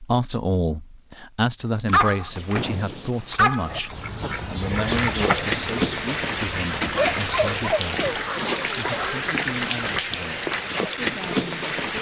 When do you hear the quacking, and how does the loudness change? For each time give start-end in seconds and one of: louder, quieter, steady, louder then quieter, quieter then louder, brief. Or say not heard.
3.6-10.0 quieter.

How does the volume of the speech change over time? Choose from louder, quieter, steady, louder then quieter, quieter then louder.
quieter.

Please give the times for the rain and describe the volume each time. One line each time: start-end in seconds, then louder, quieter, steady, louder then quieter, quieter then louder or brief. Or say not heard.
4.8-11.9 steady.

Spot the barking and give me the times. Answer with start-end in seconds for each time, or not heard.
1.9-4.0, 7.0-9.2.